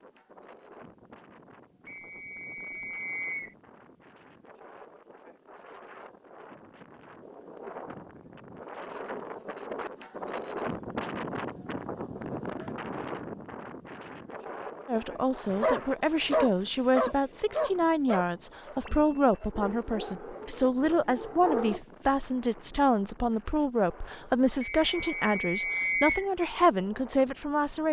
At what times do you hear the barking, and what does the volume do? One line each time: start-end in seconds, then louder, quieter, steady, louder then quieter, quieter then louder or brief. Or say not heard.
15.5-21.8 quieter.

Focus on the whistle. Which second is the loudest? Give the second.
26 s.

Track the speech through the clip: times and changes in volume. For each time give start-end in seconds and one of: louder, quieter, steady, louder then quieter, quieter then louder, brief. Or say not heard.
14.8-27.8 steady.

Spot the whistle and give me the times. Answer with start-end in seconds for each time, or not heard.
1.9-3.5, 24.6-26.3.